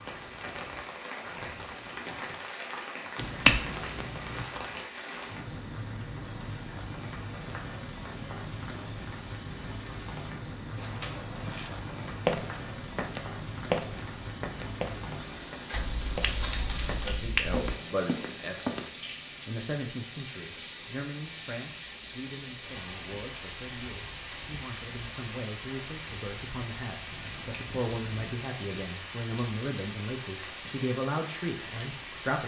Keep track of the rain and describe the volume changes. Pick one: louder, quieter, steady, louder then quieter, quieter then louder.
steady.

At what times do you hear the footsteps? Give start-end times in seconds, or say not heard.
10.8-18.9.